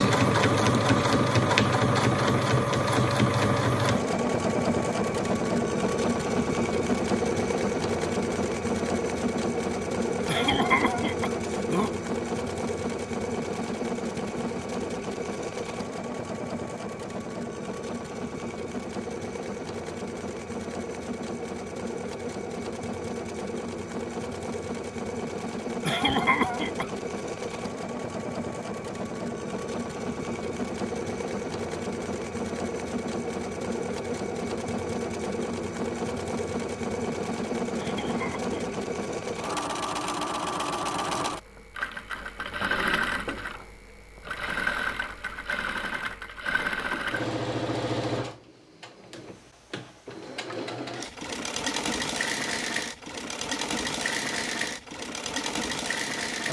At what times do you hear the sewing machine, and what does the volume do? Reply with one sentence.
The sewing machine can be heard from 0.0 to 56.4 s, getting quieter.